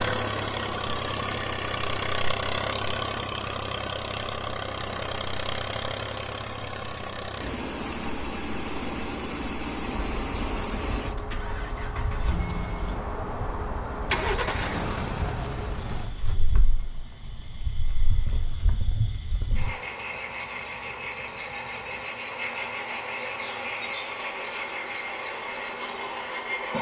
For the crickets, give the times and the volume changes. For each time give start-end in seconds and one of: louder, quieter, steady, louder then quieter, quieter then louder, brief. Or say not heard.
0.1-26.7 louder.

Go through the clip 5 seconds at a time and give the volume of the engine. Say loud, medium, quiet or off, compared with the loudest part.
loud, loud, loud, medium, quiet, off.